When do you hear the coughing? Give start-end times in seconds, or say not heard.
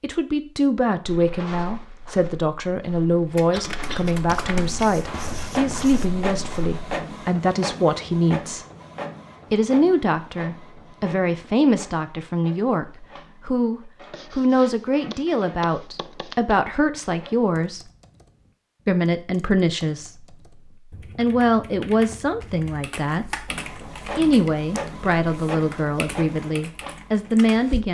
3.5-4.1.